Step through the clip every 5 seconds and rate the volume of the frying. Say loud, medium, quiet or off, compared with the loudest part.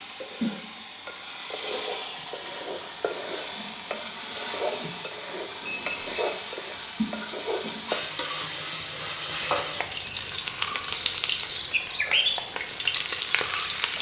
medium, loud, loud.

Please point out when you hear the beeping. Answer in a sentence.
You can hear the beeping from 5.6 to 6.2 s.